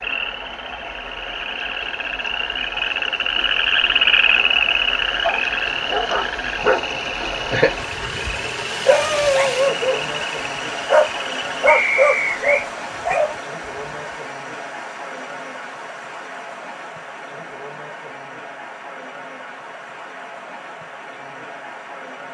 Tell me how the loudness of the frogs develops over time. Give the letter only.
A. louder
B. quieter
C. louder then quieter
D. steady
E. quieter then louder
C.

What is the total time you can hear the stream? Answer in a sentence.
The stream can be heard for 22 seconds in total.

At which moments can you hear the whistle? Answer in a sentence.
You can hear the whistle from 11.7 to 12.7 s.